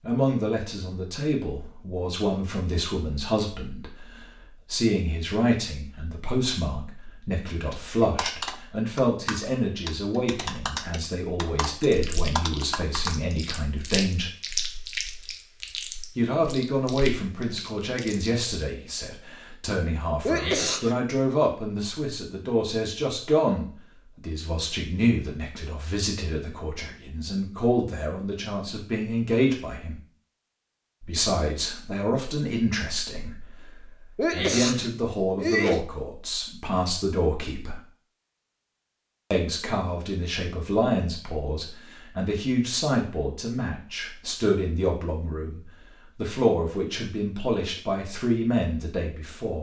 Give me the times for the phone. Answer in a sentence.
You can't hear the phone here.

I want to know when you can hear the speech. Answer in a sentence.
You can hear the speech from 0.0 to 14.3 s, from 16.1 to 30.0 s, from 31.0 to 37.8 s and from 39.3 to 49.5 s.